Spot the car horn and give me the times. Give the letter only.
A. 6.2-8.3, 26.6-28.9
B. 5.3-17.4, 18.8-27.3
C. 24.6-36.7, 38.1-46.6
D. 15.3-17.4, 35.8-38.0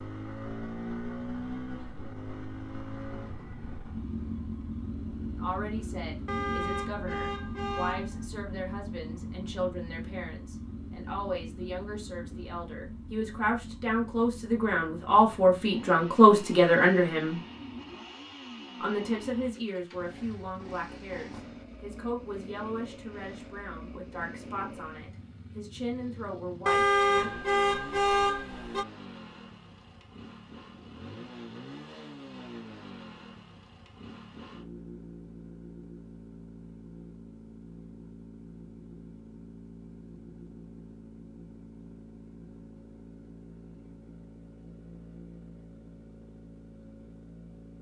A.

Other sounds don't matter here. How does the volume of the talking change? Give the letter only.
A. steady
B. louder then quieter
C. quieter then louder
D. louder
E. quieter
B.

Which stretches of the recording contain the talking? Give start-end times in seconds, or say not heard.
5.3-17.4, 18.8-27.3.